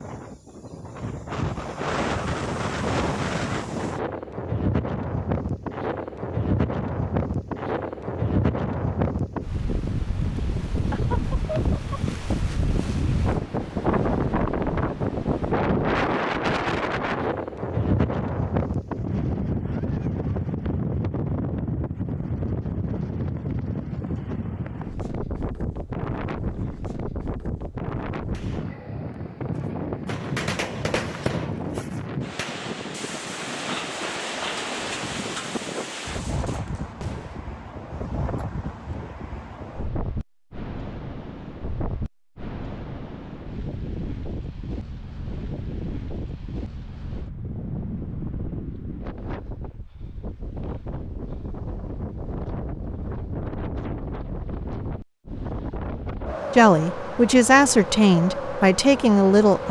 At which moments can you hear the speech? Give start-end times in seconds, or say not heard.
56.5-59.6.